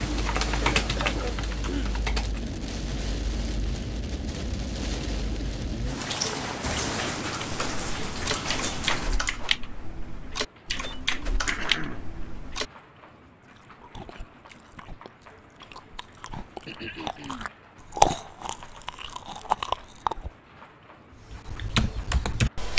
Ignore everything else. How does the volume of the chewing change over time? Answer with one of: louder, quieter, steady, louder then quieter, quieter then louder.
louder then quieter.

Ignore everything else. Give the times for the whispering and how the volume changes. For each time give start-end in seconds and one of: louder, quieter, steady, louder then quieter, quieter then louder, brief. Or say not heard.
not heard.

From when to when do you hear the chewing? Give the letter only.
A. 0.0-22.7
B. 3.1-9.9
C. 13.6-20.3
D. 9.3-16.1
C.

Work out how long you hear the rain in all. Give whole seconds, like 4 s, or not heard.
23 s.